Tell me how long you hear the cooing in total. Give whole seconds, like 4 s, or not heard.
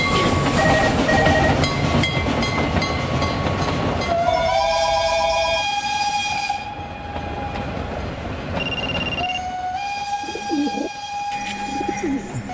2 s.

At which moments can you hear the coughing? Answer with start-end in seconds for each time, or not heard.
not heard.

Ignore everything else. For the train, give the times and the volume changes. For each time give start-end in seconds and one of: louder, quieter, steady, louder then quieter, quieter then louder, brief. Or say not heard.
0.0-12.4 quieter.